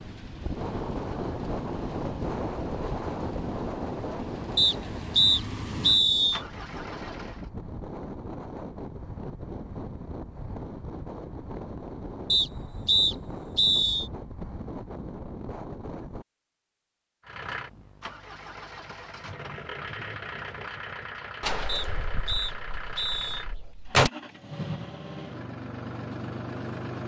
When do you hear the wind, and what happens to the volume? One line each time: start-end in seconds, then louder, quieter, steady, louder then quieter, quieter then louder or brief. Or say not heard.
0.0-16.2 quieter.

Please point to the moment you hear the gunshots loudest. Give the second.
24 s.